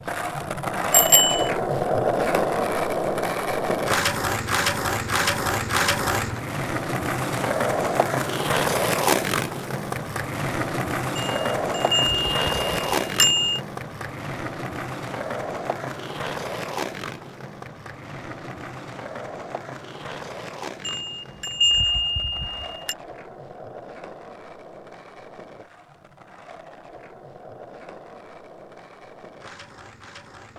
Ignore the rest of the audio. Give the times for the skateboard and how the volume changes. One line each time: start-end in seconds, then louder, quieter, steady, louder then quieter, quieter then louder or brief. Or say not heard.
0.0-30.5 quieter.